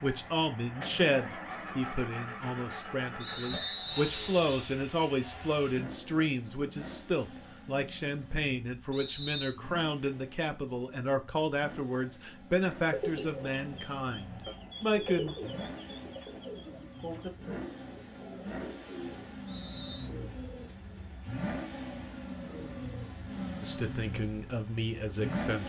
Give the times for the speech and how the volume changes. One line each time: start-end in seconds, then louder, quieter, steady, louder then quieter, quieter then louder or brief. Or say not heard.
0.0-15.3 steady
23.6-25.6 brief.